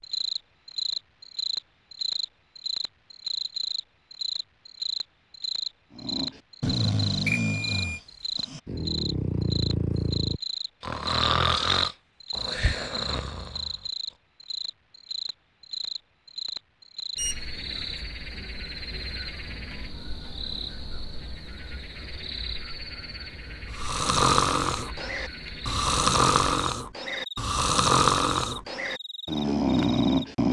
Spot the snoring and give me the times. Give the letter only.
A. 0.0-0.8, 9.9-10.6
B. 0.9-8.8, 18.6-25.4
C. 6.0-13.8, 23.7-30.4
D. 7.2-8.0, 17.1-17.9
C.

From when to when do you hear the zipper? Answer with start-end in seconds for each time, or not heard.
not heard.